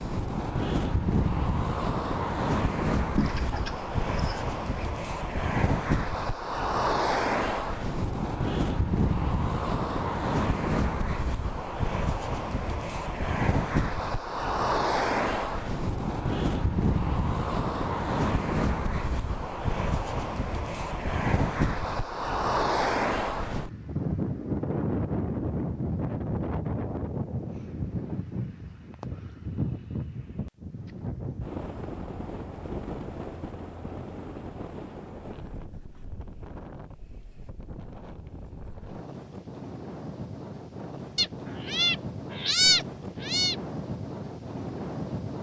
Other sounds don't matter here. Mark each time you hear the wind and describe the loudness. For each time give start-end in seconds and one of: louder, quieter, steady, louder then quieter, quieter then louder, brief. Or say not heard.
0.0-45.3 quieter.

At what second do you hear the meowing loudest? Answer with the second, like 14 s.
43 s.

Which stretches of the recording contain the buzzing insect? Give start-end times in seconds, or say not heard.
not heard.